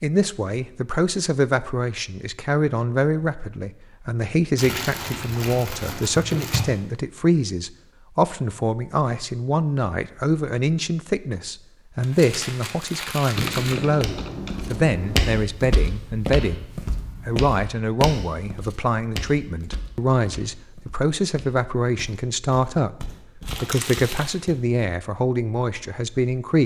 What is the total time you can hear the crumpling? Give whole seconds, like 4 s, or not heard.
5 s.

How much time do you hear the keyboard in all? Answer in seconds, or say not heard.
2 s.